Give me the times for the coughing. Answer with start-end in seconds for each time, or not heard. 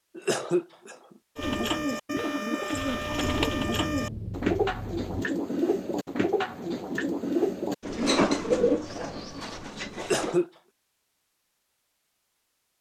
0.1-0.9, 9.9-10.5.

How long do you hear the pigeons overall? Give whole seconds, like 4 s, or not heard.
9 s.